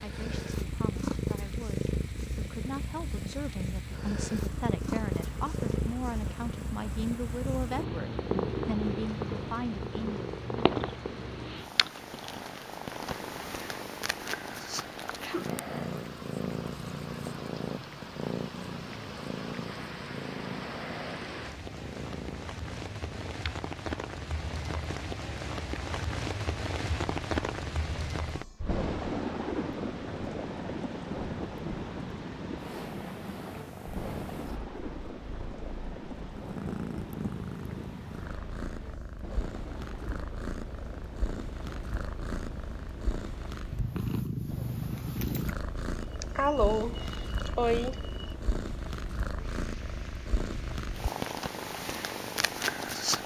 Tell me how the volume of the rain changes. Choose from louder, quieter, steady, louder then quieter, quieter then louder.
louder then quieter.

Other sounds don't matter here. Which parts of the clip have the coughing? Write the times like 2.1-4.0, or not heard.
45.8-48.4.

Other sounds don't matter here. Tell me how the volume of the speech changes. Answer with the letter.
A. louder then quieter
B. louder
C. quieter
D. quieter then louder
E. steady
B.